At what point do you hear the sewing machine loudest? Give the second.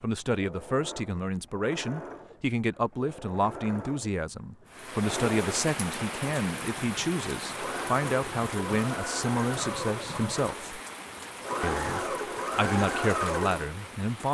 13 s.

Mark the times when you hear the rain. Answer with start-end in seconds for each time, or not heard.
4.7-14.3.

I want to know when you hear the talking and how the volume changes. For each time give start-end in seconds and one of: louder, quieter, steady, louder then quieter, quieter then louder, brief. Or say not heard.
0.0-10.8 steady
11.6-14.3 brief.